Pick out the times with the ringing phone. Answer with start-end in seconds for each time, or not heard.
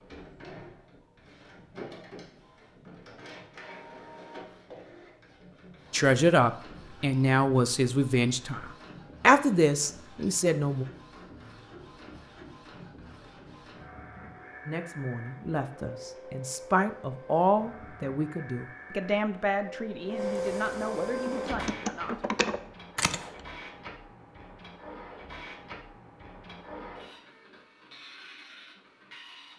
not heard.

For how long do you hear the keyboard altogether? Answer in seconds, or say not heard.
2 s.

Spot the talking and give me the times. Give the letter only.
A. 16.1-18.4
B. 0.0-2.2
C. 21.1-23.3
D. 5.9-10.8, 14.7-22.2
D.